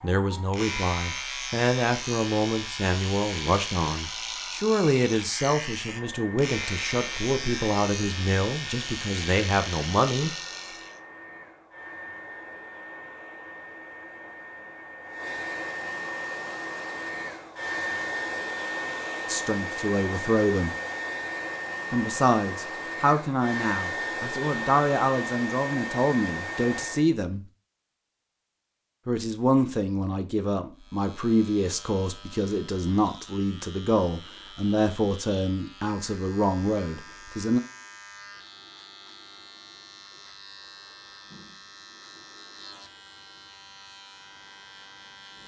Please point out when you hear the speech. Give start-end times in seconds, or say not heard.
0.0-10.3, 19.2-20.7, 21.9-27.4, 29.1-37.6.